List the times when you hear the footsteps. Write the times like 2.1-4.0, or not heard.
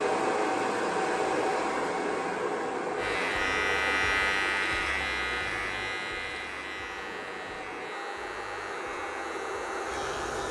not heard.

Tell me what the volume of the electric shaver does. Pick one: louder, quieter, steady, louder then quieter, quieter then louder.
quieter.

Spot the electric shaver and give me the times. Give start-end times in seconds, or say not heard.
3.0-10.4.